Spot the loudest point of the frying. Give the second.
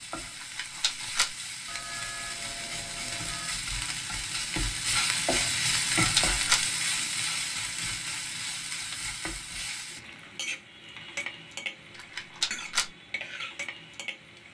6 s.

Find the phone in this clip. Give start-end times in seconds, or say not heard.
1.6-3.6.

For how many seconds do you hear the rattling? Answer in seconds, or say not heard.
3 s.